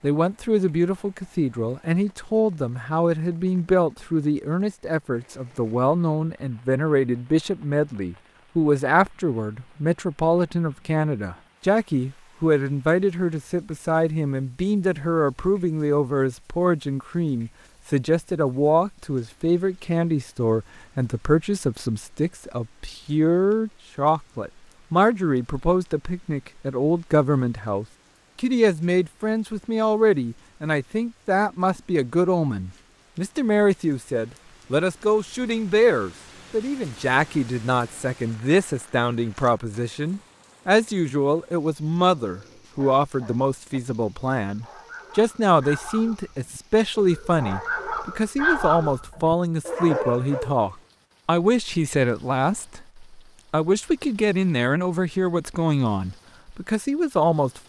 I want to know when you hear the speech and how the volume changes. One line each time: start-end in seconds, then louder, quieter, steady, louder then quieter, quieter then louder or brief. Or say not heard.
0.0-57.6 steady.